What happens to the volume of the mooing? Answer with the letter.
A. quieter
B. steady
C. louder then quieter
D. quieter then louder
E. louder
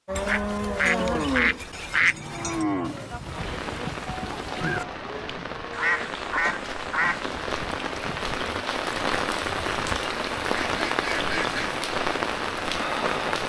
A.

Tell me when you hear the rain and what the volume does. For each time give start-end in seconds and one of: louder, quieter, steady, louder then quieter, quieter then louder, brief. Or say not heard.
3.2-13.4 louder.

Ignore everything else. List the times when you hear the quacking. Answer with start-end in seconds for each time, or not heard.
0.1-2.6, 5.7-7.2, 9.7-11.7.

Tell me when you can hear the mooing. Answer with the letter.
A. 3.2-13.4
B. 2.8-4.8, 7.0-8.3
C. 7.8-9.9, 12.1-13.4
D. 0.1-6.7
D.